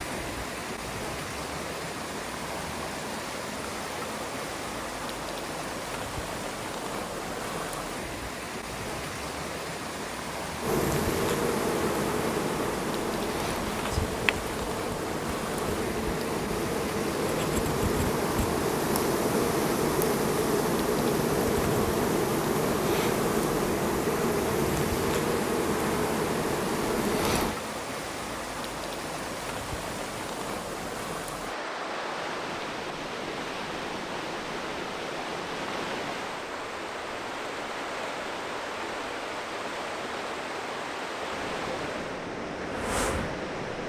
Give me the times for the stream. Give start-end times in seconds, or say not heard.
0.0-43.8.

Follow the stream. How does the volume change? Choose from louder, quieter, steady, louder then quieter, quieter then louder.
steady.